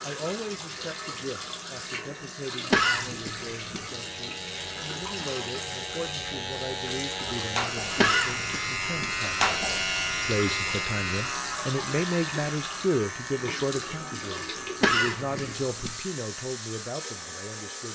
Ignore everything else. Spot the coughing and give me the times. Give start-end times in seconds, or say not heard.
2.7-3.9, 8.0-9.2, 14.8-16.0.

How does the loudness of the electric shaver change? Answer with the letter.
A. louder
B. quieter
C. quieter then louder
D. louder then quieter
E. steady
D.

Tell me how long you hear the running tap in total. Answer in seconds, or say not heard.
18 s.